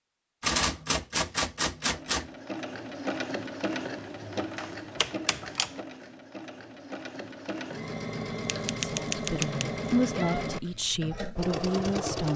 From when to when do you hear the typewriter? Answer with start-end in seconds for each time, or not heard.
0.4-2.3, 4.6-5.7, 8.4-10.4.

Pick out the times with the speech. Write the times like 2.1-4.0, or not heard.
8.8-12.3.